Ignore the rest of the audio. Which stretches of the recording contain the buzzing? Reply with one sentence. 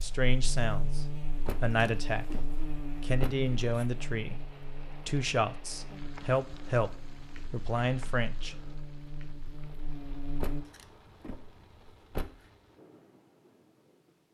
The buzzing can be heard from 0.0 to 10.7 s.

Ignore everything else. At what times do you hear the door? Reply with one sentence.
The door can be heard from 1.4 to 3.9 s and from 10.4 to 12.4 s.